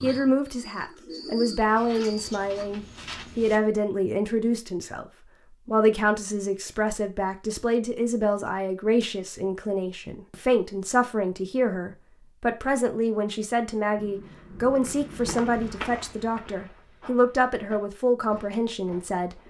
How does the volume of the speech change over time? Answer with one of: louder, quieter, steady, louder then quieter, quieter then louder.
steady.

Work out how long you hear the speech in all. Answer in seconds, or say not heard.
19 s.